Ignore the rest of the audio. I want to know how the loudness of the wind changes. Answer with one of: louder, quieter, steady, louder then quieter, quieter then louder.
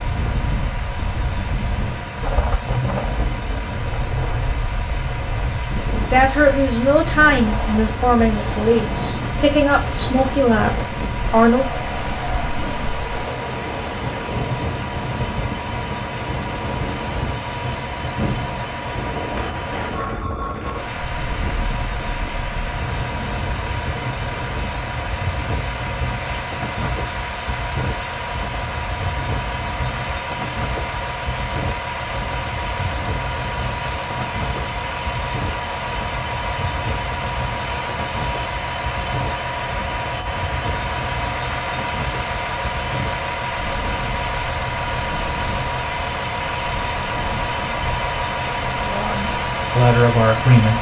quieter.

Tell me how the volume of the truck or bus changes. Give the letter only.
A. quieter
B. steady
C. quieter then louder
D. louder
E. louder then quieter
D.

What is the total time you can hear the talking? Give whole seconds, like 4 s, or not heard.
8 s.